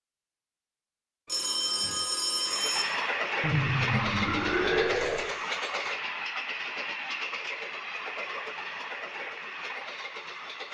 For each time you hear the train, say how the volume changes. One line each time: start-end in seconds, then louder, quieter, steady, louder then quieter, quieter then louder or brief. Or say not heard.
2.4-10.6 quieter.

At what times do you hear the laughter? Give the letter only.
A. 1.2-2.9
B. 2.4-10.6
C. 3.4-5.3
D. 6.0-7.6
C.